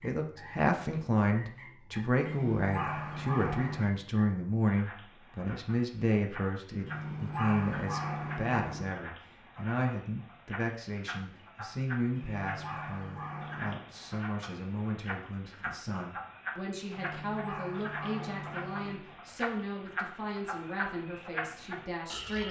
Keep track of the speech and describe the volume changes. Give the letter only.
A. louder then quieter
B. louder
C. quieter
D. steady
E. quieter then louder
C.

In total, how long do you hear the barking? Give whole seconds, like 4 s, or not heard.
7 s.